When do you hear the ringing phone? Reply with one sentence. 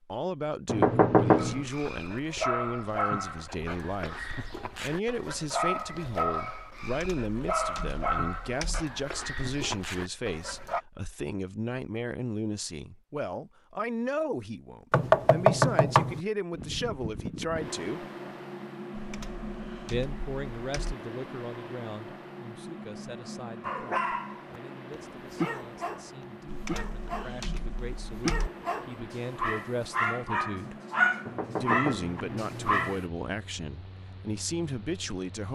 The ringing phone can't be heard in this clip.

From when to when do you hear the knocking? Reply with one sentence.
You can hear the knocking from 0.7 to 1.6 s, from 14.9 to 16.2 s and from 31.2 to 33.0 s.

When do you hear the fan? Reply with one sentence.
You can hear the fan from 16.5 to 35.4 s.